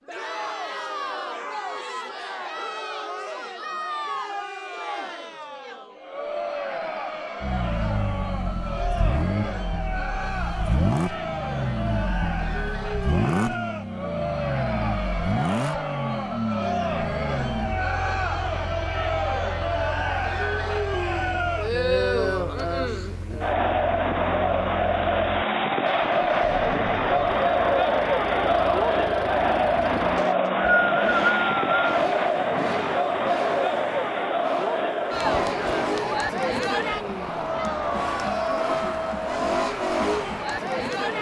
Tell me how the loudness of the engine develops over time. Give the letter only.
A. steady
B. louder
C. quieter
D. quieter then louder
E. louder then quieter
D.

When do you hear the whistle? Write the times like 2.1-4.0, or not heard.
30.1-31.9.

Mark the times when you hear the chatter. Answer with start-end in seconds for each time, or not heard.
0.1-41.1.